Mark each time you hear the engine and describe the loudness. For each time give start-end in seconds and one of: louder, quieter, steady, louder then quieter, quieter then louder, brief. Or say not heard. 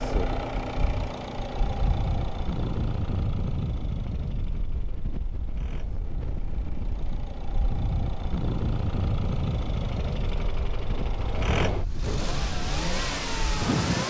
0.0-14.0 quieter then louder.